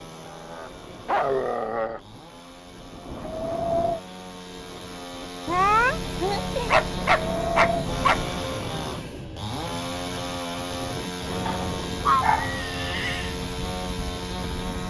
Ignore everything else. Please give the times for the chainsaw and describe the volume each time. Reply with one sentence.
You can hear the chainsaw from 0.0 to 14.8 s, getting louder.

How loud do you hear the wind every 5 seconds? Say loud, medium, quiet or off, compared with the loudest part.
loud, loud, medium.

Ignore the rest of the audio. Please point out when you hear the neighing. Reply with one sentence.
You can hear the neighing from 12.3 to 13.4 s.